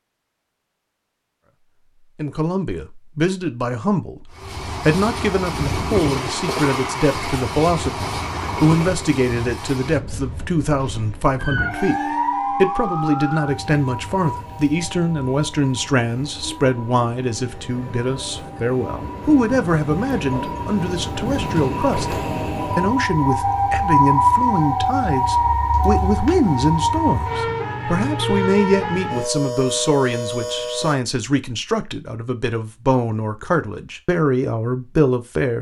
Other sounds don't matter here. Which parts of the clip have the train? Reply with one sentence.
You can hear the train from 4.3 to 23.1 s.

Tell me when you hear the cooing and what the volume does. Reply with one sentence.
The cooing can't be heard in this clip.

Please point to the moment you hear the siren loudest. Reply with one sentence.
The volume of the siren peaks at 24 seconds.